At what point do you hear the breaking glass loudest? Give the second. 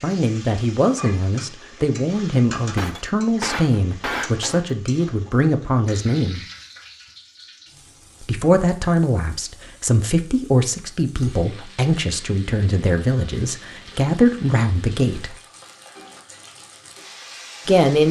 4 s.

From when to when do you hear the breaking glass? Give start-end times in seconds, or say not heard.
2.8-4.7.